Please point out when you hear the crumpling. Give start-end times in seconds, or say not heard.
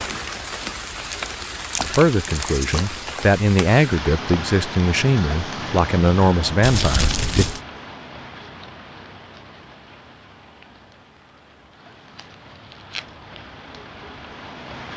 1.1-2.9, 6.6-7.6, 12.2-13.1.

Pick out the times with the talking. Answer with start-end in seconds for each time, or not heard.
1.9-7.5.